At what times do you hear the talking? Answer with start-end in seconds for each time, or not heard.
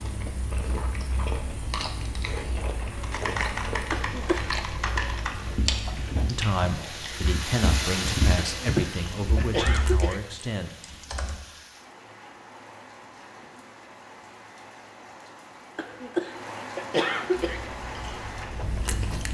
6.2-10.7.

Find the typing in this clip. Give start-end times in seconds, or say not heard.
2.9-11.4.